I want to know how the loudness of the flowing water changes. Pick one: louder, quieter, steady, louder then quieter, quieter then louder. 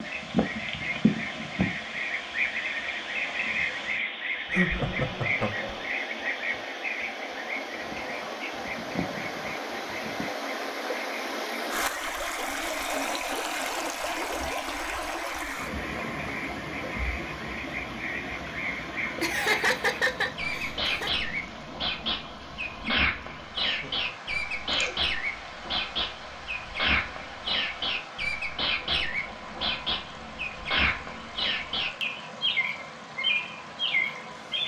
louder then quieter.